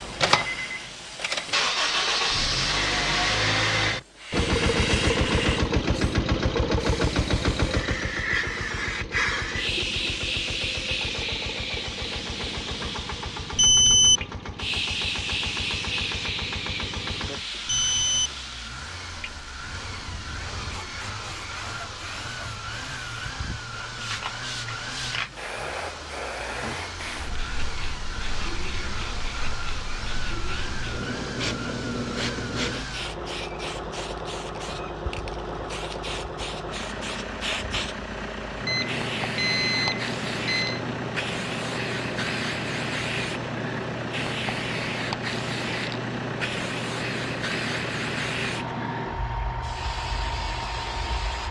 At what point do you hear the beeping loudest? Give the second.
14 s.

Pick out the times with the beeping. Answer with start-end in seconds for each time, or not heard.
13.6-14.2, 17.6-18.3, 38.6-40.8.